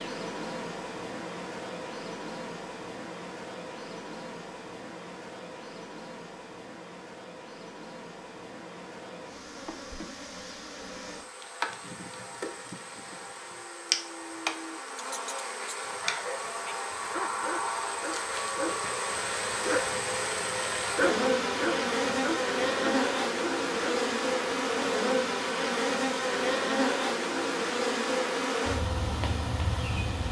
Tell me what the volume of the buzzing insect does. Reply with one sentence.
The volume of the buzzing insect goes up.